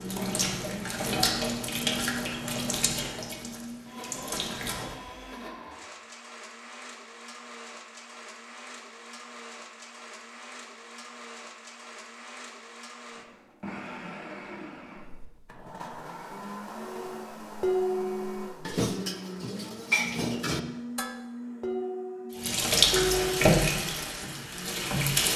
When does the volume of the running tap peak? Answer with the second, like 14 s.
23 s.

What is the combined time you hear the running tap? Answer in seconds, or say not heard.
8 s.